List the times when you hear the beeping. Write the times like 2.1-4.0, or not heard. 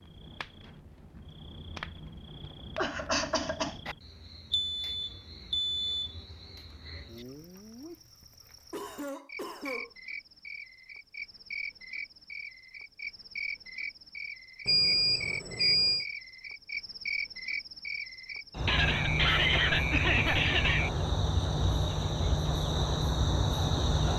4.5-6.2, 14.7-16.1.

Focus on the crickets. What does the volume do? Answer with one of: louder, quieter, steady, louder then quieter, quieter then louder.
louder.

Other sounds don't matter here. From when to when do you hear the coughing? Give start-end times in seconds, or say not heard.
2.8-3.8, 8.7-9.9, 18.6-20.9.